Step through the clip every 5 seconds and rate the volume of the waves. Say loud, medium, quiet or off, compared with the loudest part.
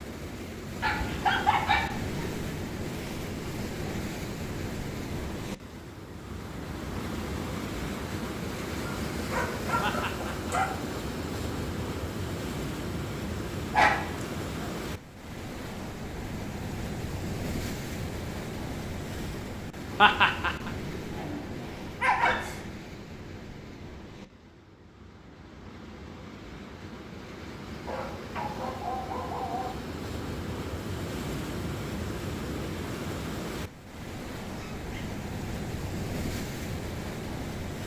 loud, loud, loud, loud, medium, medium, loud, loud.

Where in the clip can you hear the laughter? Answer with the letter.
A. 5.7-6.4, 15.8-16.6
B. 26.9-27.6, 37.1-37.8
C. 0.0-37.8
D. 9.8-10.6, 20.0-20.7
D.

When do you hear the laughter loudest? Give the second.
20 s.